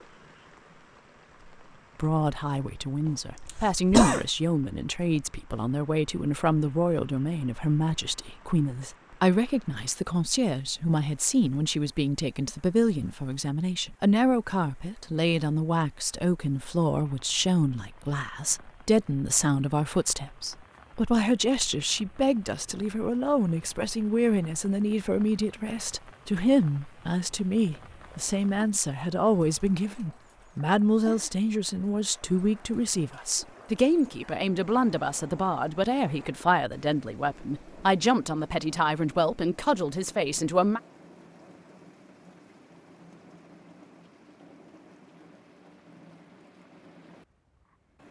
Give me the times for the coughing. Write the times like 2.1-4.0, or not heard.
3.0-4.2.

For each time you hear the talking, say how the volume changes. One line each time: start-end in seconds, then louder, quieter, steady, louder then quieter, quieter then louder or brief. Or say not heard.
1.9-40.8 steady.